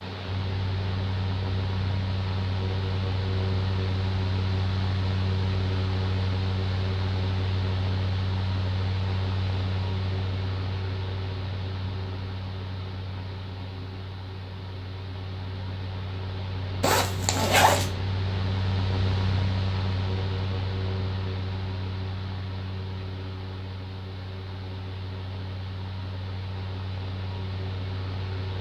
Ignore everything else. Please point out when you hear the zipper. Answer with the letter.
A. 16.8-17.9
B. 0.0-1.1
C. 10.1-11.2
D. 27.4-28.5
A.